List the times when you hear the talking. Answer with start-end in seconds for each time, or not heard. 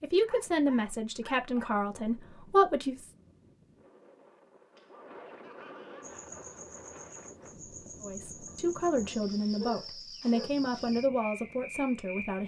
0.0-3.1, 8.0-12.4.